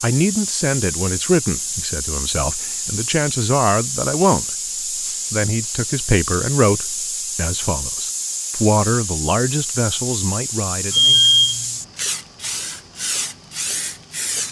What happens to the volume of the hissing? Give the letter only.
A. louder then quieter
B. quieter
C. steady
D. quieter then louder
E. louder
C.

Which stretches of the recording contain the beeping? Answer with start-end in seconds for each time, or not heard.
10.9-11.7.